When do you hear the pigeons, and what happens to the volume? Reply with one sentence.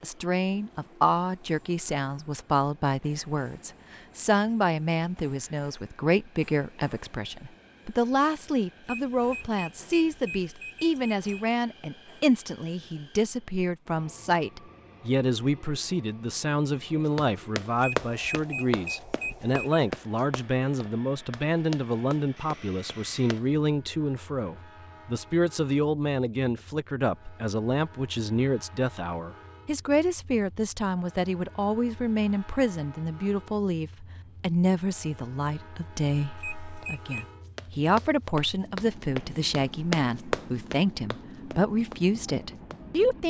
The pigeons can't be heard in this clip.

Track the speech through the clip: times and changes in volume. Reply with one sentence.
You can hear the speech from 0.0 to 43.2 s, at a steady volume.